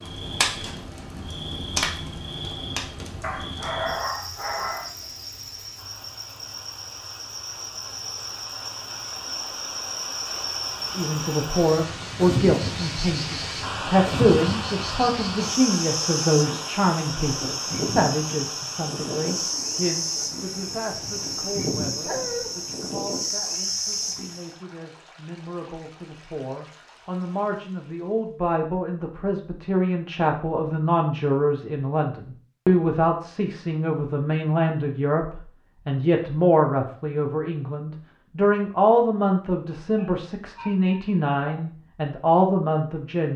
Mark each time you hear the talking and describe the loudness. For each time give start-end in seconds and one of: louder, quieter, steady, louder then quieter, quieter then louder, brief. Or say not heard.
10.9-43.3 quieter then louder.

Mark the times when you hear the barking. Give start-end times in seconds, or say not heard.
3.2-4.9, 22.0-22.5, 40.0-41.6.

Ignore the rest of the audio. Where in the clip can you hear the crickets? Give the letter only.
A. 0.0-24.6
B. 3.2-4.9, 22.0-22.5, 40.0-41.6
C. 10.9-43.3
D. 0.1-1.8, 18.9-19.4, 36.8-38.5
A.